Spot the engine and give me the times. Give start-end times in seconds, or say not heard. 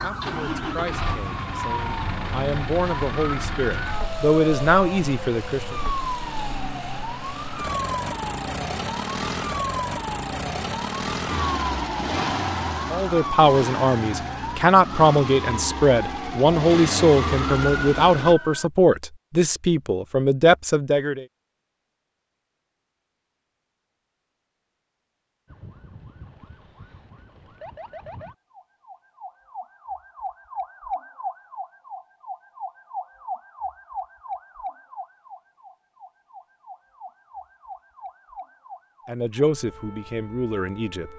0.0-18.4.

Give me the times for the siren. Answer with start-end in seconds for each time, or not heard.
0.0-18.7, 25.4-41.1.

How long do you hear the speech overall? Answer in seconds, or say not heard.
16 s.